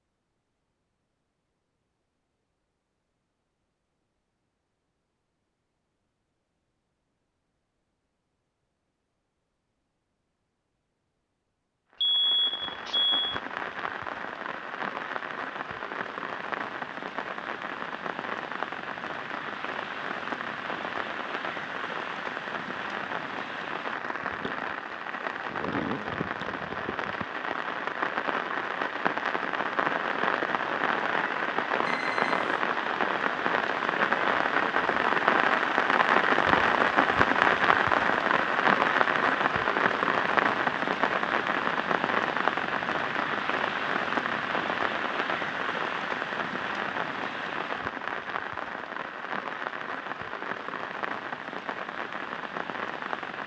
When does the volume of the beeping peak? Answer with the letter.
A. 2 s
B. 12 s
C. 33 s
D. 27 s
B.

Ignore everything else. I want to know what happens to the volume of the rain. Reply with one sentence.
The volume of the rain goes up, then down.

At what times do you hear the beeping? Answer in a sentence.
The beeping can be heard from 12.0 to 13.4 s and from 31.9 to 32.6 s.